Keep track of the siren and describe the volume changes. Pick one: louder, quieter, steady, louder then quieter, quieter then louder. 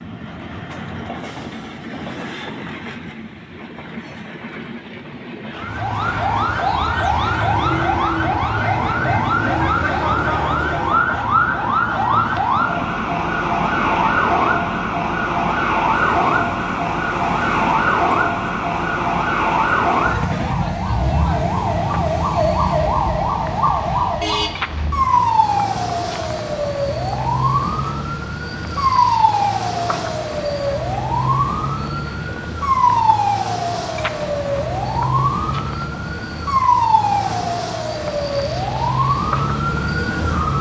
steady.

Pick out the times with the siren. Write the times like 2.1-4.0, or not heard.
5.5-40.5.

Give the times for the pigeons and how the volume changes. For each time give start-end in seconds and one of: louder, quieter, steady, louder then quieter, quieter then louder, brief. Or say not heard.
not heard.